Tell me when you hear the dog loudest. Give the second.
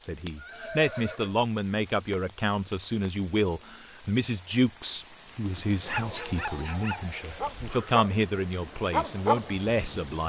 9 s.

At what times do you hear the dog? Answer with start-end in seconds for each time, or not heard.
5.8-10.2.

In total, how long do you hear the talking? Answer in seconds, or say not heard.
10 s.